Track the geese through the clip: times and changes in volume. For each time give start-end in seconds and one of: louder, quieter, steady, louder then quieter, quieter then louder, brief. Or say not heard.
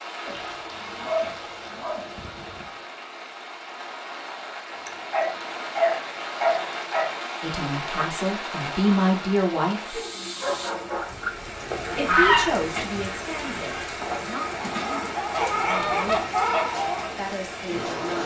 11.0-17.1 quieter then louder.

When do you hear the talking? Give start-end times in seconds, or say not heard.
7.4-9.9, 11.9-16.3, 17.1-18.2.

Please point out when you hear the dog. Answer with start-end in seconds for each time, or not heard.
0.2-2.6, 4.7-7.2, 9.9-12.2, 15.3-16.2.